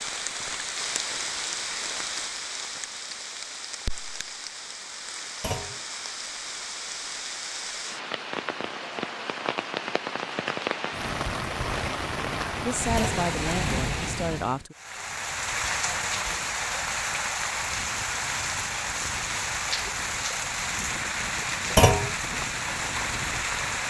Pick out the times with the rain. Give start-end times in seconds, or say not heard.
0.0-23.8.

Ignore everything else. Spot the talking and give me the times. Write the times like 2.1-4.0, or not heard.
12.7-14.8.